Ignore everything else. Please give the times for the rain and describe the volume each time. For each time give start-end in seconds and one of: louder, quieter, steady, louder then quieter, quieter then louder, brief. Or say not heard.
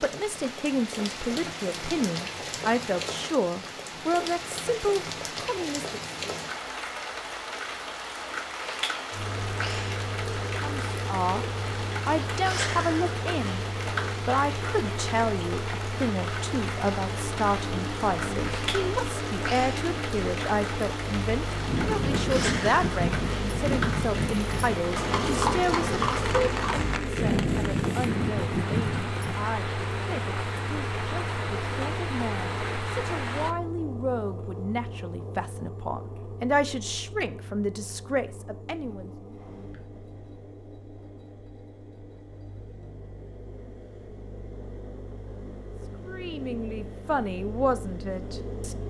0.0-33.5 steady.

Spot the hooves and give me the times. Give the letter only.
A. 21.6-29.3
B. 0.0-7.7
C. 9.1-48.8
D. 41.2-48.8
A.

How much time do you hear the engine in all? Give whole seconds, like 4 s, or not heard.
40 s.